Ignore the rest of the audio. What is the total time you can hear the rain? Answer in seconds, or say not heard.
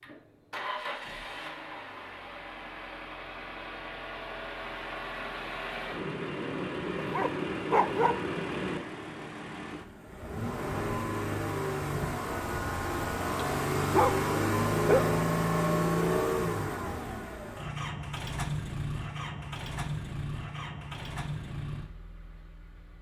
not heard.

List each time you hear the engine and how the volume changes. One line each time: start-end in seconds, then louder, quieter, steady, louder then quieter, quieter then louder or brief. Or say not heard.
0.0-22.9 louder then quieter.